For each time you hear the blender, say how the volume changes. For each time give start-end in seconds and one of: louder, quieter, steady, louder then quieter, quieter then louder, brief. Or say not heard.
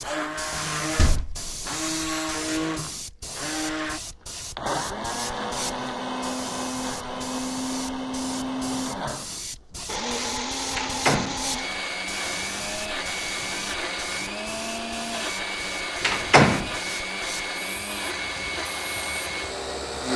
0.0-20.1 steady.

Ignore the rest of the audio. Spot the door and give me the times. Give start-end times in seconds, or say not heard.
0.5-1.4, 10.8-11.4, 16.0-16.7.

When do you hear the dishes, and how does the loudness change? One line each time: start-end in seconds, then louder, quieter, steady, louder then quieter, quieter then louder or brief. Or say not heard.
not heard.